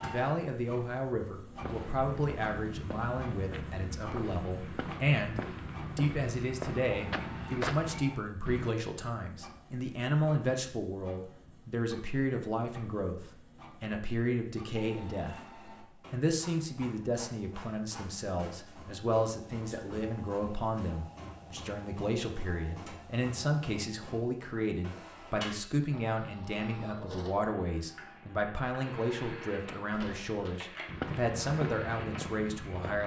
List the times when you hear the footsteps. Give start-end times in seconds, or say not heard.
1.6-8.7, 29.9-33.0.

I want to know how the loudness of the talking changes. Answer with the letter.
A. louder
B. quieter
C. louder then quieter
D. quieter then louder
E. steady
E.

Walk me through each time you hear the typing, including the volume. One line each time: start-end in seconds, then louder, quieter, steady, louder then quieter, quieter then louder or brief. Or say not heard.
not heard.